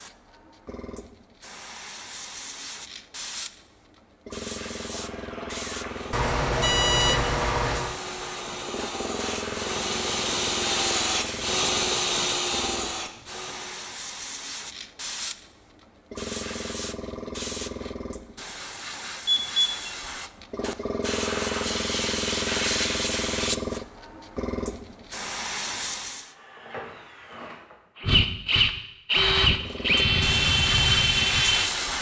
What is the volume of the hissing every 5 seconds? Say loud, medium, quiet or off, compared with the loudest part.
medium, medium, medium, medium, loud, medium, loud.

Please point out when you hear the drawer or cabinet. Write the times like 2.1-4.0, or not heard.
not heard.